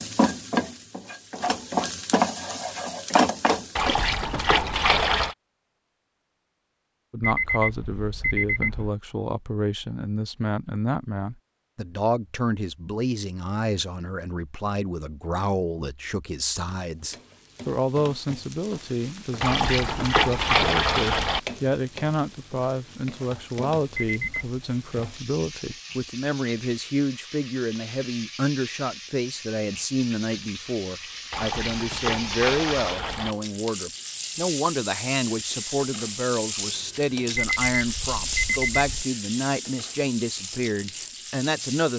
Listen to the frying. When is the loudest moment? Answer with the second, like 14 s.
3 s.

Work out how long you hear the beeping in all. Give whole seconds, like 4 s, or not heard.
4 s.